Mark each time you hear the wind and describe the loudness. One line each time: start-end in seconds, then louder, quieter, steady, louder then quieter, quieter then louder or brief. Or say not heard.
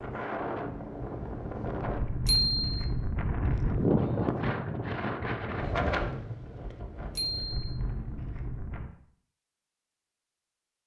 0.0-8.9 louder then quieter.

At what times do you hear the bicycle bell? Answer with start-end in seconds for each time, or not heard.
2.2-2.9, 7.2-7.6.